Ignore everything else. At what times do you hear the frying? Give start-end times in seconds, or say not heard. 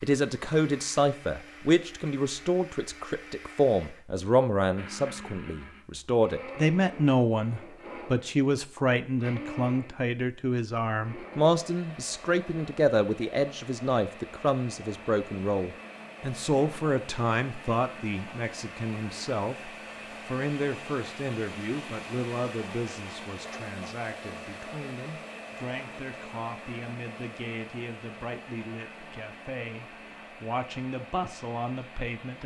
not heard.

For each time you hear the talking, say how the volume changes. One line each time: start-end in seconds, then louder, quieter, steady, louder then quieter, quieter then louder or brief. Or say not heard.
0.0-32.4 quieter.